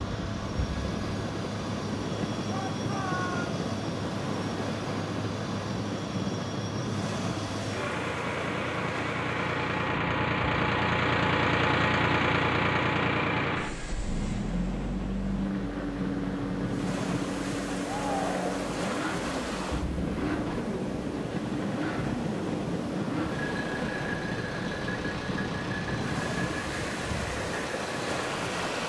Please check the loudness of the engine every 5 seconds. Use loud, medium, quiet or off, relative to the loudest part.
medium, medium, loud, medium, medium, medium.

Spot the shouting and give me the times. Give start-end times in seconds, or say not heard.
2.5-3.5, 17.9-18.6.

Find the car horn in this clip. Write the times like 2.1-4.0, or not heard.
not heard.